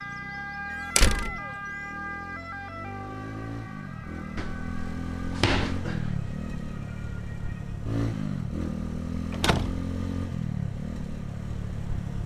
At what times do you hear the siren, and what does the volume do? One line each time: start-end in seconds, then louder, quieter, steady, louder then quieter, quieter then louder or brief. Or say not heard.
0.0-7.8 quieter.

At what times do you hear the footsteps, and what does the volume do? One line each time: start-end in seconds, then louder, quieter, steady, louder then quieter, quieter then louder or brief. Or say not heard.
not heard.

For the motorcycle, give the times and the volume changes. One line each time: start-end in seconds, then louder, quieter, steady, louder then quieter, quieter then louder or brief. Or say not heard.
0.0-12.2 louder.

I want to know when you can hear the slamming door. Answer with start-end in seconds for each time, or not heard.
0.9-1.4, 4.3-6.3, 9.3-9.9.